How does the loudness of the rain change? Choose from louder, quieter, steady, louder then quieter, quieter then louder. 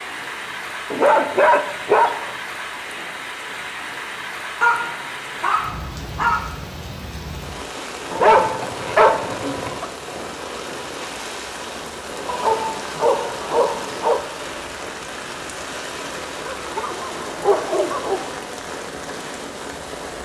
steady.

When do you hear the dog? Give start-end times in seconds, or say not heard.
0.9-2.3, 4.6-6.5, 8.1-9.9, 12.2-14.2, 16.4-18.4.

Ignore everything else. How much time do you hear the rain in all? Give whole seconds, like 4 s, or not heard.
20 s.